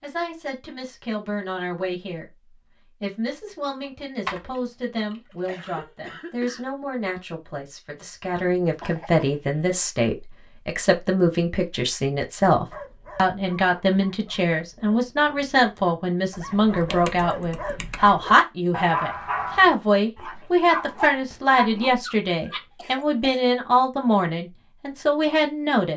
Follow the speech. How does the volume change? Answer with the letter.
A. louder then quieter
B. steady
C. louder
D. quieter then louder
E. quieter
C.